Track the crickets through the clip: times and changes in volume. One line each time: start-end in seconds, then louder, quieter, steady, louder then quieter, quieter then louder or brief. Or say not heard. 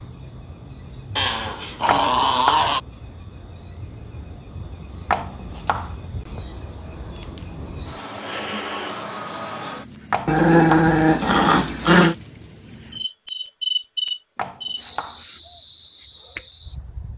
0.0-17.1 louder.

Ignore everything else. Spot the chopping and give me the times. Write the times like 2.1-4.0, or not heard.
1.9-2.7, 5.1-6.0, 10.1-10.9, 14.3-15.2.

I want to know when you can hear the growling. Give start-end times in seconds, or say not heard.
1.1-2.8, 10.2-12.2.